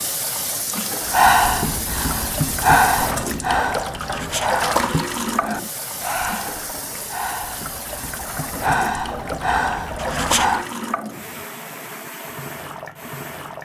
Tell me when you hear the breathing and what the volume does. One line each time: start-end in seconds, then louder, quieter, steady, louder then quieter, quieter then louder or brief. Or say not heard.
1.1-10.7 quieter then louder.